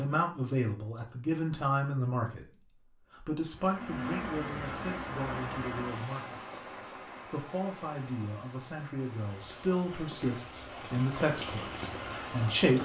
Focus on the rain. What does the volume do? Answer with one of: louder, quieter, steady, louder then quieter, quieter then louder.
quieter then louder.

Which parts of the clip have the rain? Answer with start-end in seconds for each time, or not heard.
3.5-12.7.